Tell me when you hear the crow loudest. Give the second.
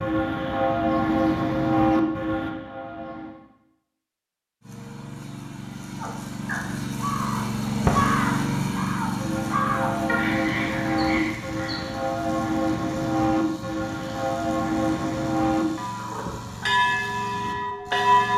8 s.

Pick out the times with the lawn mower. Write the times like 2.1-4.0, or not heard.
4.6-18.3.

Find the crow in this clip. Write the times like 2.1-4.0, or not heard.
6.0-11.9.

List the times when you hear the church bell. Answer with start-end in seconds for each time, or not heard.
0.0-3.4, 9.2-18.3.